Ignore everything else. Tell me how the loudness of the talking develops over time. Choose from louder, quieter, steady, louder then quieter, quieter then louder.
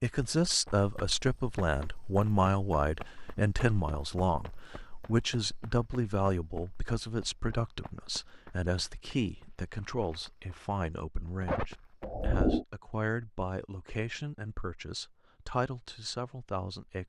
quieter.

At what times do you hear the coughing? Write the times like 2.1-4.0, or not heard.
11.4-12.7.